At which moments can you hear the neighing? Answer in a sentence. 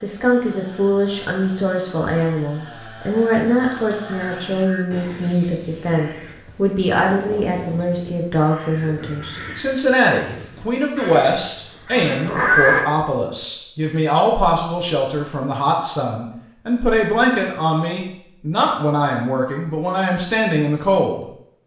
You can hear the neighing from 12.1 to 12.8 s.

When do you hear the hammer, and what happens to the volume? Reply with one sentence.
The hammer can't be heard in this clip.